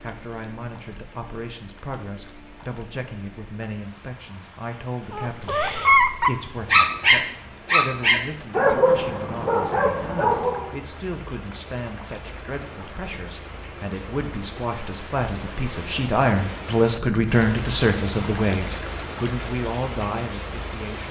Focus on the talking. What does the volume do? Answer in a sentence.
The loudness of the talking goes up.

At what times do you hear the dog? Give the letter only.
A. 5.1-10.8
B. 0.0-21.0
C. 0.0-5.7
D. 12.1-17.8
A.